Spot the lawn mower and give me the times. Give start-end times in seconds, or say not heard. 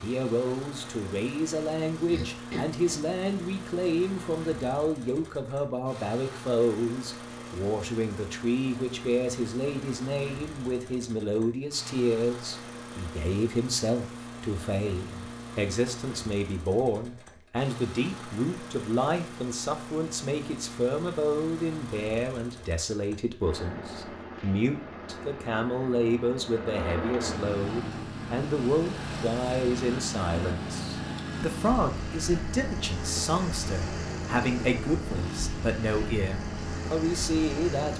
0.0-37.9.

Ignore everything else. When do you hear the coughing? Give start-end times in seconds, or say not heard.
2.0-3.0.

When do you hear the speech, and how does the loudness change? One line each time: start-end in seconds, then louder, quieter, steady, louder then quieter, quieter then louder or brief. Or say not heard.
0.0-37.9 steady.